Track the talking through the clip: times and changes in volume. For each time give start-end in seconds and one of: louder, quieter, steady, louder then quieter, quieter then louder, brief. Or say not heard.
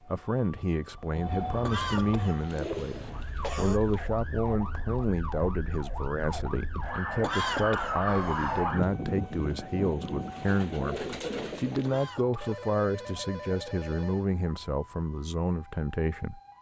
0.1-16.4 steady.